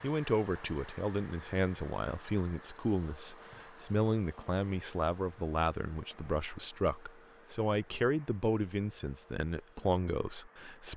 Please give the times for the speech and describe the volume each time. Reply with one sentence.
The speech can be heard from 0.0 to 10.9 s, at a steady volume.